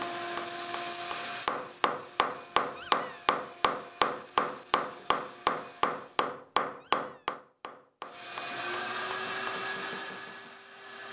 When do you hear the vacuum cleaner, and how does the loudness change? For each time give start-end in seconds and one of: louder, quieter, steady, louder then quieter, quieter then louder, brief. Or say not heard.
0.0-6.3 quieter
8.1-11.0 brief.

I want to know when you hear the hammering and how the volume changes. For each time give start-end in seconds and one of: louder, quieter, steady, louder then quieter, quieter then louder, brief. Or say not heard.
0.0-9.6 louder then quieter.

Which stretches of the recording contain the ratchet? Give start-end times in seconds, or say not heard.
not heard.